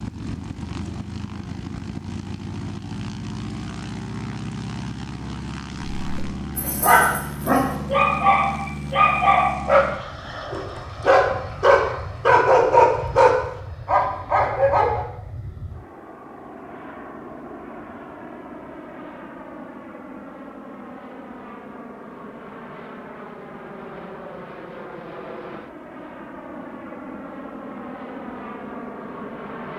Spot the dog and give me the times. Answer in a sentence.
You can hear the dog from 6.0 to 9.8 s and from 10.5 to 15.1 s.